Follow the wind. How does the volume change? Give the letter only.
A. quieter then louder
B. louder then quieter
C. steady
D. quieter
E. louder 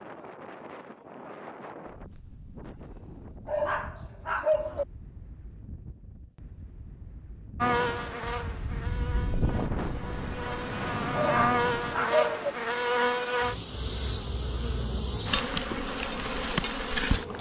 A.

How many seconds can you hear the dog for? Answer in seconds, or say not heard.
3 s.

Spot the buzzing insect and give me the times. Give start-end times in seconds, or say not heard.
7.6-17.3.